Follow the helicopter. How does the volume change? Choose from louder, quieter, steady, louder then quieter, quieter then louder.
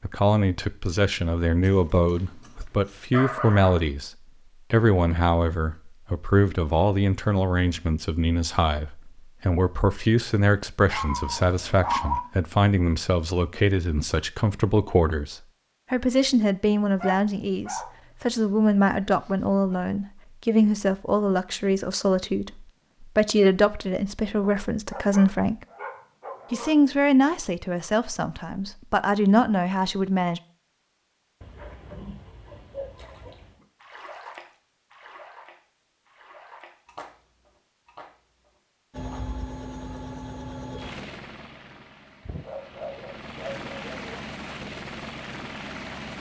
quieter then louder.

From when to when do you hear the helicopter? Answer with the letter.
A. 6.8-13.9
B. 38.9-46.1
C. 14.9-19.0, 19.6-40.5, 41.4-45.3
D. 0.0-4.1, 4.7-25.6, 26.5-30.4
B.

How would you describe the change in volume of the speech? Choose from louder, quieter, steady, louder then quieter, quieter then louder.
steady.